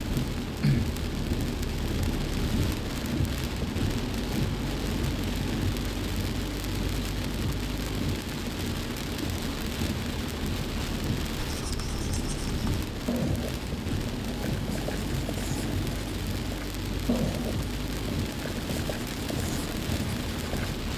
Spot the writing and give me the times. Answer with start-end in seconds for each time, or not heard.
11.4-20.8.